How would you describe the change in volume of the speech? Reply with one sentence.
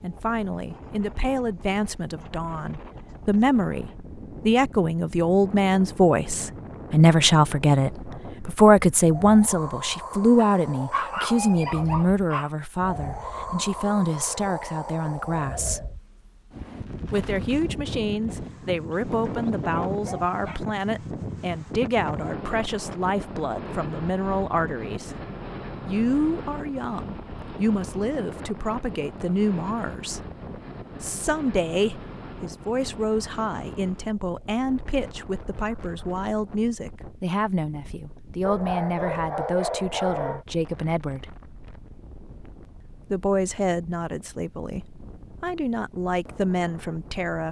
The volume of the speech goes down.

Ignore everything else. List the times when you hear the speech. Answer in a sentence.
The speech can be heard from 0.0 to 15.9 s, from 17.1 to 25.1 s, from 25.9 to 30.2 s, from 31.0 to 41.4 s and from 43.1 to 47.4 s.